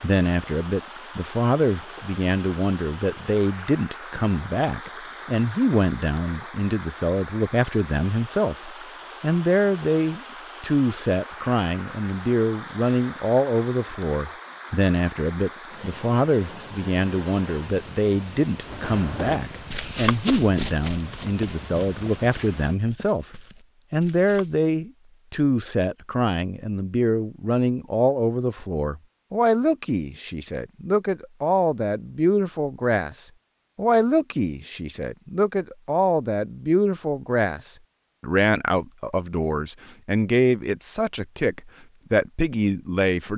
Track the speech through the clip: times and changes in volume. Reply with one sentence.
You can hear the speech from 0.0 to 43.3 s, at a steady volume.